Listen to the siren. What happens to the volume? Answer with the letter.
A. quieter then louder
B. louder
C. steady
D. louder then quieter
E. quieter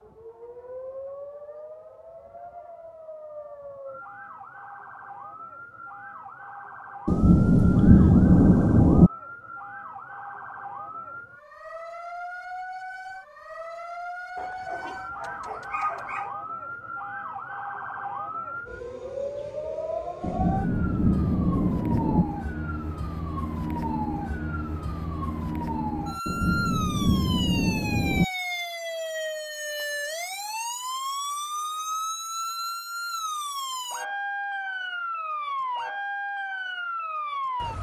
B.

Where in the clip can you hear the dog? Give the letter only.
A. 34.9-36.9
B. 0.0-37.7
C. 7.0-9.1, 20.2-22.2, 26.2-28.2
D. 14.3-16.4
D.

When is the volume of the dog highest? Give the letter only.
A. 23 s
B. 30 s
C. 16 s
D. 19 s
C.